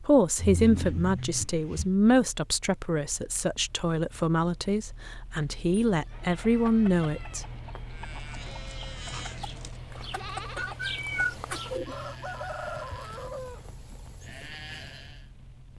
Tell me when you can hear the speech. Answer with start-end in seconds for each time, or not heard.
0.0-7.5.